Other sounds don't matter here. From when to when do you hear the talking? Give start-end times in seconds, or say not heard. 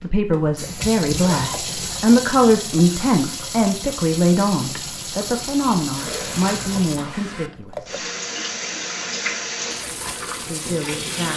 0.0-8.0, 10.4-11.3.